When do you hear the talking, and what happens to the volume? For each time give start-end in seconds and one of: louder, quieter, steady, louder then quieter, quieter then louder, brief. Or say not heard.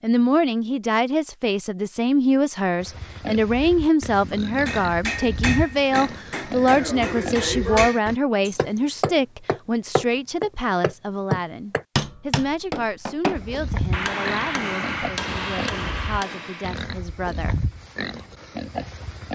0.0-17.6 quieter.